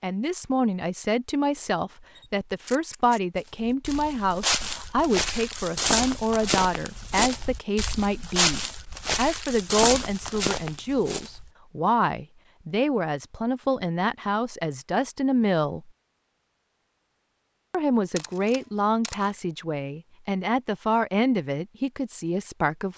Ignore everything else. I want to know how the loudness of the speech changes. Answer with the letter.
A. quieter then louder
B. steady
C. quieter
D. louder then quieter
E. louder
B.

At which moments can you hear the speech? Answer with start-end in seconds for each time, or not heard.
0.0-15.9, 17.7-22.9.